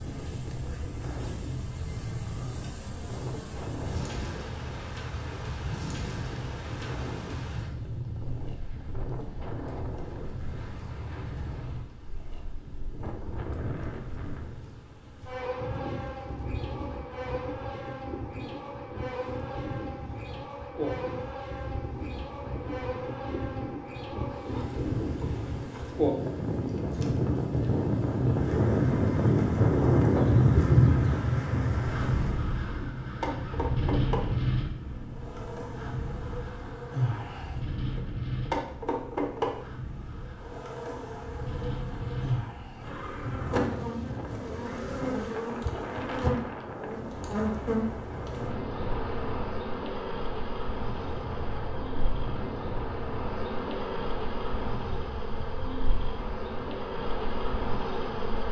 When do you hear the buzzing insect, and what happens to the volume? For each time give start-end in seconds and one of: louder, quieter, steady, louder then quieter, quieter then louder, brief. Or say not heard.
0.0-58.4 louder.